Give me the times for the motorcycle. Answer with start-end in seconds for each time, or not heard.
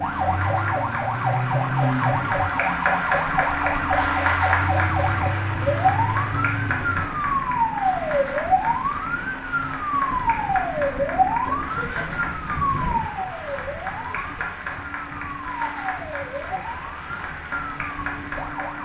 not heard.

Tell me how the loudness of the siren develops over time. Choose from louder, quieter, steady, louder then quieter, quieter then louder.
quieter.